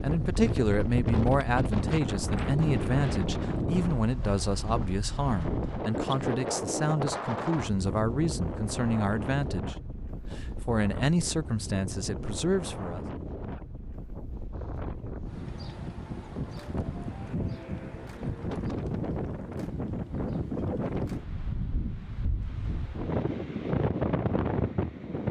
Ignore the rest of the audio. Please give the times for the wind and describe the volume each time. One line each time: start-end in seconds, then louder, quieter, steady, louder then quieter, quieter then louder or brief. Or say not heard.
0.0-25.2 quieter then louder.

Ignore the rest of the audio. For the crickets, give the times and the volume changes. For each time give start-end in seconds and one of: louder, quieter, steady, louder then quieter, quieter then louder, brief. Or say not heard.
not heard.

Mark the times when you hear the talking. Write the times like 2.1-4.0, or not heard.
0.0-9.8, 10.3-13.1.